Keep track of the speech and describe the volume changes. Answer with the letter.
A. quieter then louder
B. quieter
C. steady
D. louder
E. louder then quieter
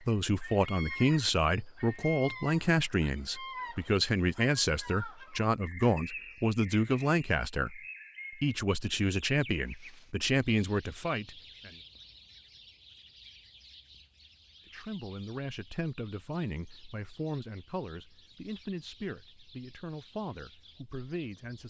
B.